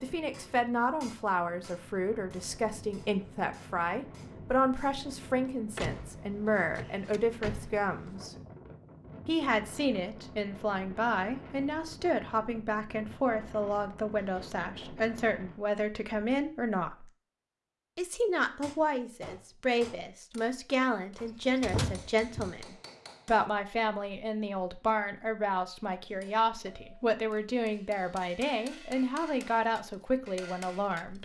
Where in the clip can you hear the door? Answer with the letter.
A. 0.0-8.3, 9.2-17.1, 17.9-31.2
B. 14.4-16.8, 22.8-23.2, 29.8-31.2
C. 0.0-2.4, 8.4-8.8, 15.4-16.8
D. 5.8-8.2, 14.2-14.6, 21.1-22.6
D.